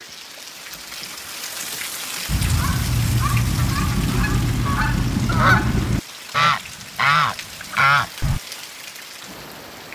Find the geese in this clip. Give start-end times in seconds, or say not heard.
2.2-8.4.